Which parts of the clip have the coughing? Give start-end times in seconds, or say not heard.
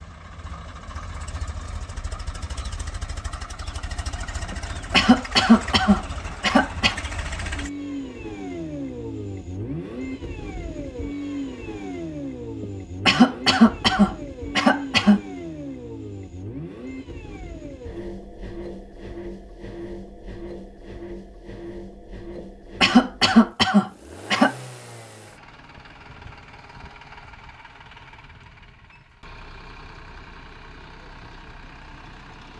4.5-7.0, 12.6-15.2, 22.4-24.6.